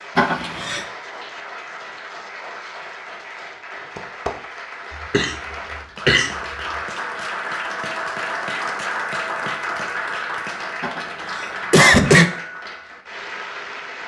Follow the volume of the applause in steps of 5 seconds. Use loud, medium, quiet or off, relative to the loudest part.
medium, loud, loud.